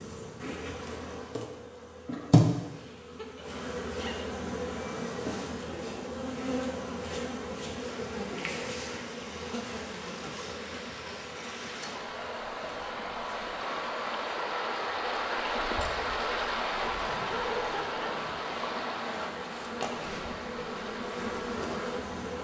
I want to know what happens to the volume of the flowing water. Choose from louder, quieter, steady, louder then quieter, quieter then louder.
louder then quieter.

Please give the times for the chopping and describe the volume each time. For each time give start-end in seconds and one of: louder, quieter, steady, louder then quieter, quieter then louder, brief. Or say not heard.
not heard.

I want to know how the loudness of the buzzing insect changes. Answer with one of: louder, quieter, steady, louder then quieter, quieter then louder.
quieter then louder.